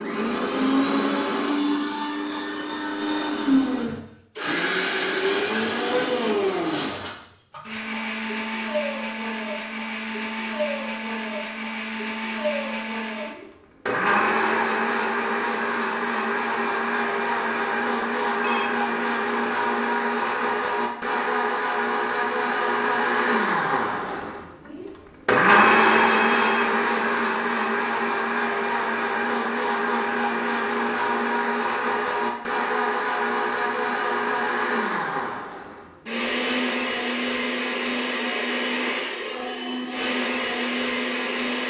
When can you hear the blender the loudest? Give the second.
26 s.